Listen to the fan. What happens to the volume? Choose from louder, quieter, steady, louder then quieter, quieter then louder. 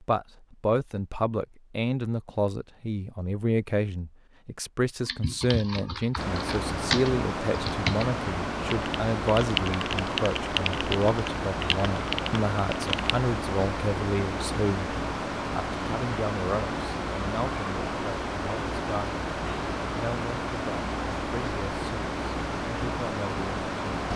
steady.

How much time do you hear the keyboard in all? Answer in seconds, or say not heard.
8 s.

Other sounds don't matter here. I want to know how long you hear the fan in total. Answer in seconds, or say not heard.
18 s.